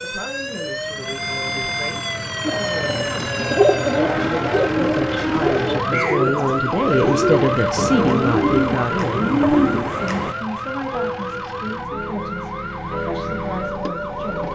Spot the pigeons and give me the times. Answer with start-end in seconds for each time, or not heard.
2.5-10.3.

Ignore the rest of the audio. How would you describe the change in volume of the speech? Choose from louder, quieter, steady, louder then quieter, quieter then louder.
louder then quieter.